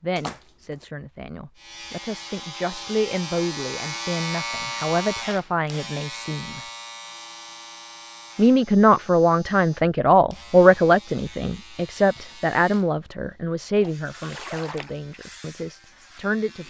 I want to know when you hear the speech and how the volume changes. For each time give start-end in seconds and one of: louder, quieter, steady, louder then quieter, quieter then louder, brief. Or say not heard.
0.0-6.6 louder
8.3-16.6 quieter.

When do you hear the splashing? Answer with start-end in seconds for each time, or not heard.
0.1-0.8, 14.2-15.0.